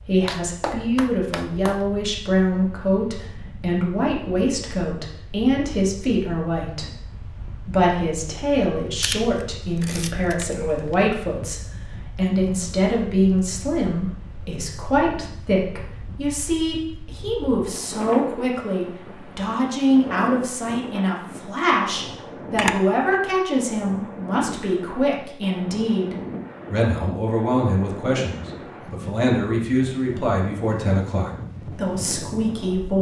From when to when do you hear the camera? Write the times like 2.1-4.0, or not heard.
9.0-10.9, 22.6-23.4.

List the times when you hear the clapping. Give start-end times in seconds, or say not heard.
0.2-1.9.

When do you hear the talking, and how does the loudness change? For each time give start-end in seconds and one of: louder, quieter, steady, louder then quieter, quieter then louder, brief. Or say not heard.
0.1-32.9 steady.